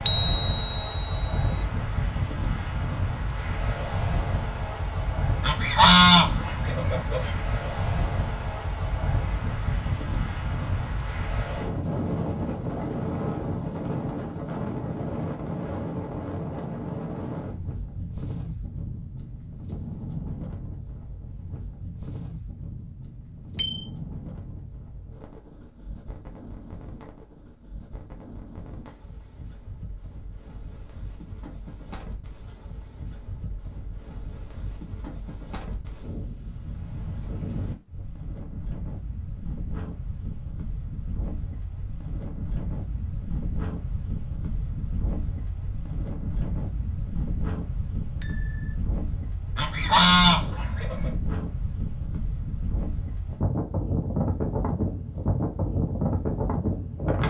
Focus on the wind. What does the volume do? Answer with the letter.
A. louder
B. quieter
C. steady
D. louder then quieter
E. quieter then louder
E.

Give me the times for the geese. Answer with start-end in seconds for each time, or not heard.
5.4-7.3, 49.5-51.1.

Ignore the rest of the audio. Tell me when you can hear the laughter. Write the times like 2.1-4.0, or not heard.
not heard.